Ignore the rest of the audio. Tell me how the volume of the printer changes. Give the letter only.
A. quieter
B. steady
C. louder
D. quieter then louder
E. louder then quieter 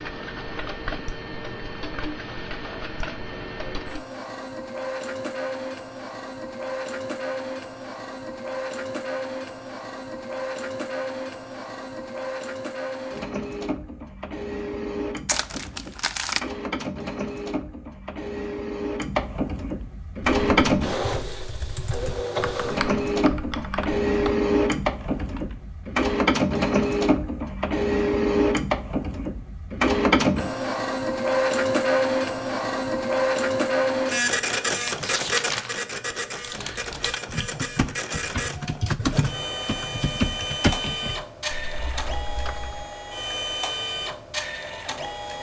E.